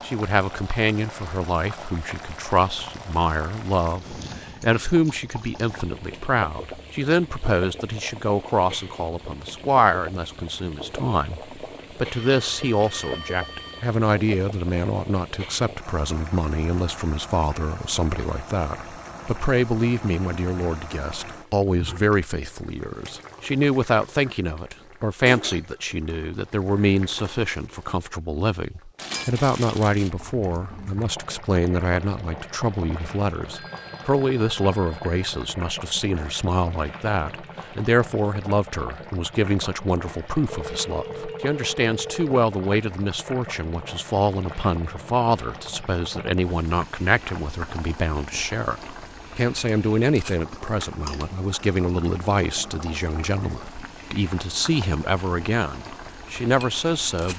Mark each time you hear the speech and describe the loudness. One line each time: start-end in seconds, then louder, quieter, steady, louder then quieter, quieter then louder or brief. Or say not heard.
0.0-57.3 steady.